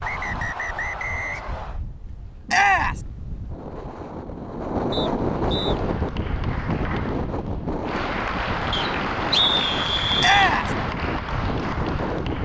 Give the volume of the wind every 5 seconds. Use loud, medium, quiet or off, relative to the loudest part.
medium, loud, loud.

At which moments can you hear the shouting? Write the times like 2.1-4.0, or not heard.
2.5-3.0, 10.2-10.8.